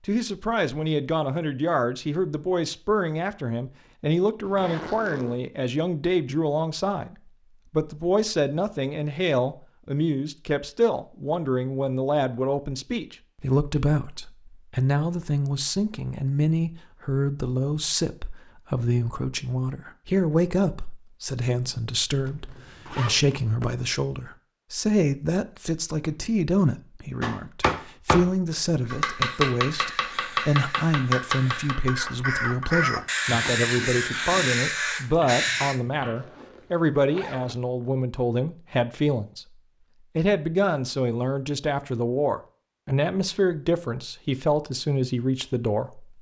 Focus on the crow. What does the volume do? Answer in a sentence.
The volume of the crow goes up.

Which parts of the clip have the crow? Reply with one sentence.
You can hear the crow from 29.1 to 35.8 s.